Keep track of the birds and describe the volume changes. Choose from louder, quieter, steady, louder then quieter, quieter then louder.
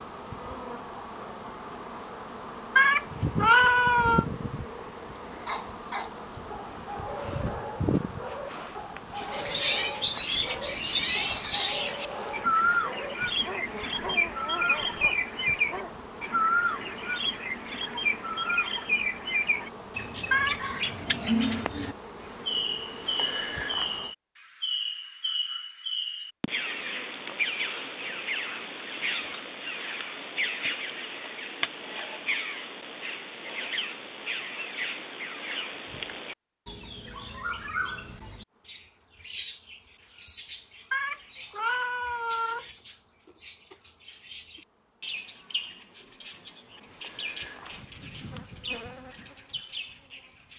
quieter.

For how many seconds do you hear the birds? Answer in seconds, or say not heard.
41 s.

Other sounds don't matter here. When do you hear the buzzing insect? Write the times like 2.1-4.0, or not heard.
0.0-24.1, 38.5-50.5.